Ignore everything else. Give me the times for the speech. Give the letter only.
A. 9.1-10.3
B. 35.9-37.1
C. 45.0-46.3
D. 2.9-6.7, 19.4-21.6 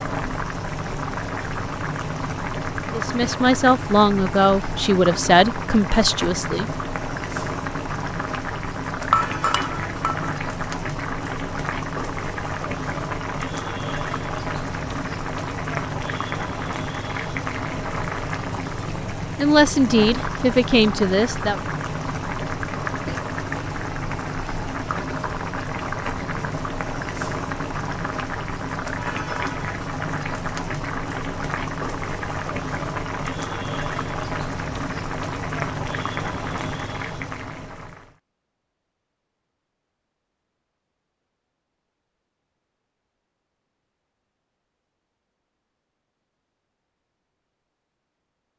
D.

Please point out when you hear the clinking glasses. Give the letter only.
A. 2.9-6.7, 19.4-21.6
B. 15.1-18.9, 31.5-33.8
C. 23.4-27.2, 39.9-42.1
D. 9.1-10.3
D.